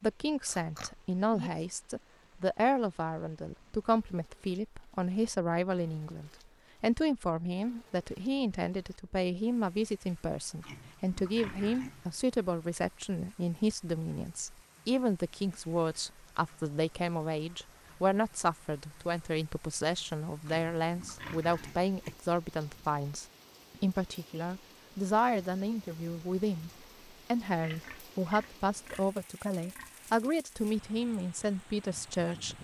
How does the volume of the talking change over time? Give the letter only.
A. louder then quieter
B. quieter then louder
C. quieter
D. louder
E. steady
E.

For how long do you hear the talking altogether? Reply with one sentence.
You can hear the talking for 32 seconds altogether.